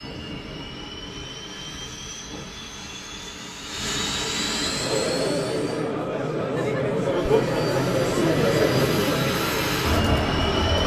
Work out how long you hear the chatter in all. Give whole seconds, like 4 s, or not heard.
6 s.